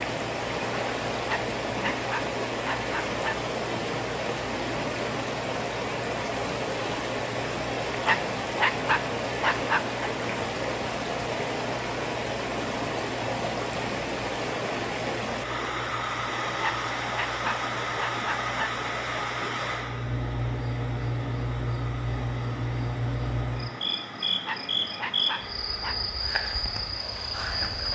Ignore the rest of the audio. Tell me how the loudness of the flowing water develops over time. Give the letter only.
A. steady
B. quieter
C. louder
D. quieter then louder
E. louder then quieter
B.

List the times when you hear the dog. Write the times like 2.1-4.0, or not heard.
1.2-3.4, 8.1-10.0, 16.6-18.7, 24.4-25.9.